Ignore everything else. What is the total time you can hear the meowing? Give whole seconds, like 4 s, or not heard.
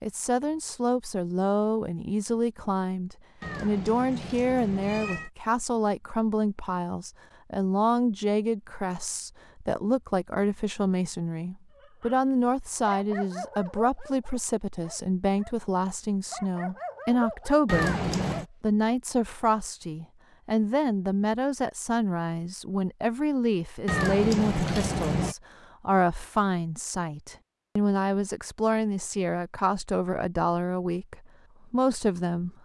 4 s.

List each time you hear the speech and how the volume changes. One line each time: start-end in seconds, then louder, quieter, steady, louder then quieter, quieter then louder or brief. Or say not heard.
0.0-32.5 steady.